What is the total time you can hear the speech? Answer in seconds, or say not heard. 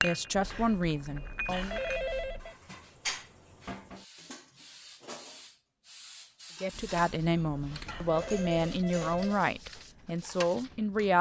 6 s.